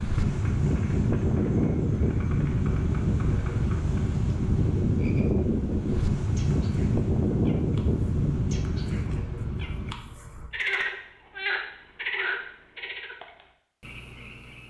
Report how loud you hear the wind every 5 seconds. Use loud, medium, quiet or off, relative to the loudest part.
loud, loud, off.